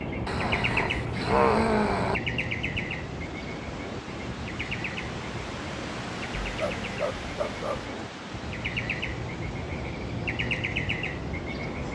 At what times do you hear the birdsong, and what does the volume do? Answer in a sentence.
You can hear the birdsong from 0.0 to 11.9 s, getting quieter then louder.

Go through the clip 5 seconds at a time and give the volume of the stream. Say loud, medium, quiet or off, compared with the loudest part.
loud, loud, medium.